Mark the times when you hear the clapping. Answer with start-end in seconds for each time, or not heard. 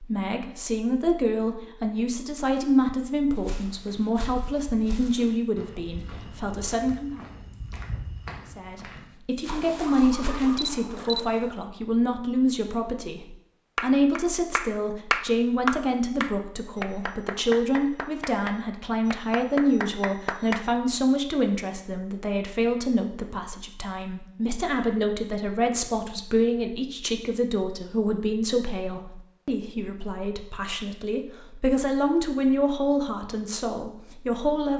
13.8-20.7.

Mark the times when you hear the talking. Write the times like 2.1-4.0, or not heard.
0.0-7.2, 8.6-34.7.